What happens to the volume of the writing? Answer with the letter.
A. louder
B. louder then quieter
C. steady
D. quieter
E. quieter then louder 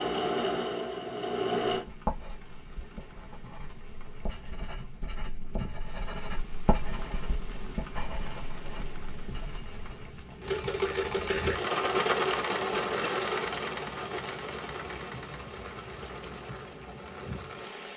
B.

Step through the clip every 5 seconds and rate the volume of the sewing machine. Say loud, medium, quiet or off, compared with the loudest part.
loud, off, loud, quiet.